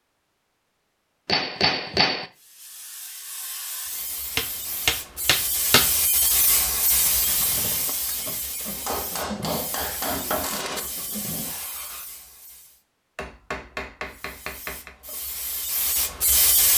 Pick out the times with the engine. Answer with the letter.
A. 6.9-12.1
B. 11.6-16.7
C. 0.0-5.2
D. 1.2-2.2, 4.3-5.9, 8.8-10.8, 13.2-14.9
A.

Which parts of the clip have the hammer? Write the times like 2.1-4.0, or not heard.
1.2-2.2, 4.3-5.9, 8.8-10.8, 13.2-14.9.